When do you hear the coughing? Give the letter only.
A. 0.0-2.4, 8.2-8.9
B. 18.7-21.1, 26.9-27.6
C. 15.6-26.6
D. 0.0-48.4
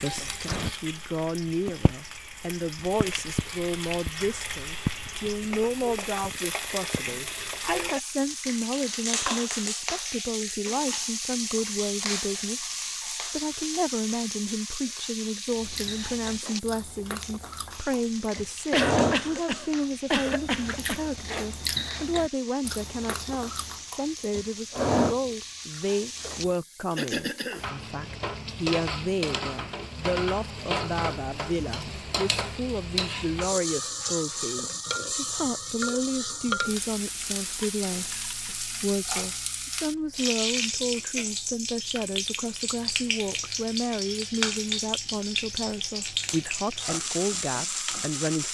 B.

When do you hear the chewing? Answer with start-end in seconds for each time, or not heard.
15.6-26.6.